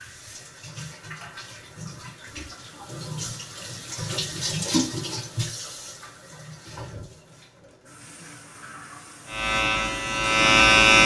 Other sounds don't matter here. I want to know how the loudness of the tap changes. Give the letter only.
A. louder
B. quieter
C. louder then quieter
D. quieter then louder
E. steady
C.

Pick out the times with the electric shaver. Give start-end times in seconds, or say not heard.
9.2-11.0.